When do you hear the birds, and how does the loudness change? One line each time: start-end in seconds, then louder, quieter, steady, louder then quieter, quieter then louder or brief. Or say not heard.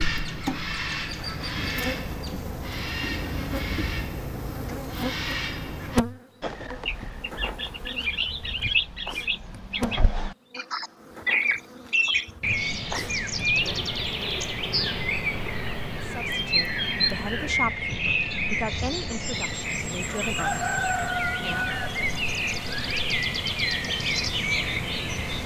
0.0-25.4 louder.